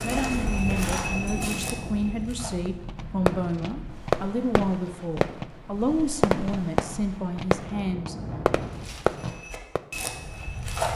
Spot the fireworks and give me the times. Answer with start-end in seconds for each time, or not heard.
2.6-9.8.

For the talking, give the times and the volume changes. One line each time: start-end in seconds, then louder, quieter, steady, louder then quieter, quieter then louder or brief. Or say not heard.
0.0-8.2 steady.